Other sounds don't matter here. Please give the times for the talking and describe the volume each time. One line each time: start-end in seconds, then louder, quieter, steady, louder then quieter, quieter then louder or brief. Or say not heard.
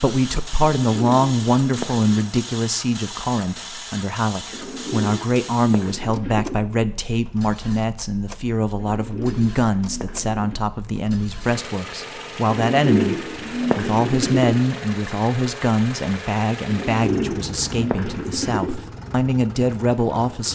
0.0-20.4 steady.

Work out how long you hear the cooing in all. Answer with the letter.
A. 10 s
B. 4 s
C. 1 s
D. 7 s
A.